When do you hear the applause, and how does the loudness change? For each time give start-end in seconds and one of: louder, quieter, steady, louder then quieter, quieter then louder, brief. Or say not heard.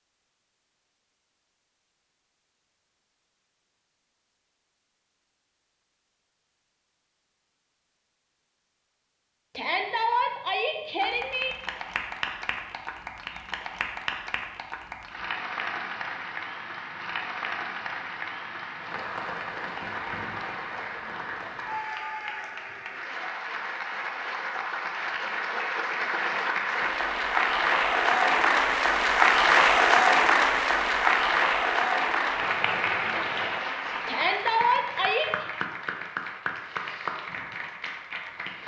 11.0-38.6 louder then quieter.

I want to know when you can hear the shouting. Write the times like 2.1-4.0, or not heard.
9.6-11.6, 34.0-35.5.